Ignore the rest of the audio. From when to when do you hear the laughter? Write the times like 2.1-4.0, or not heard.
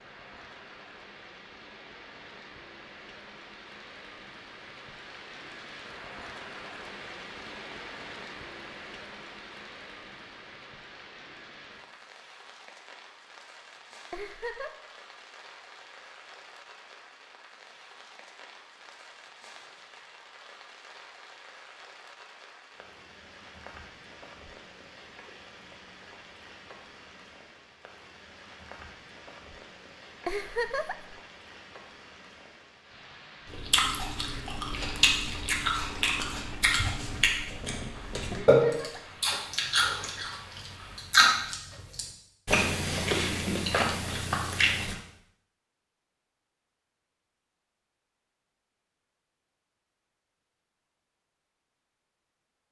14.1-14.7, 30.2-31.1, 38.5-39.2.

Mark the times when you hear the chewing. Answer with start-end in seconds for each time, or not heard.
33.5-45.0.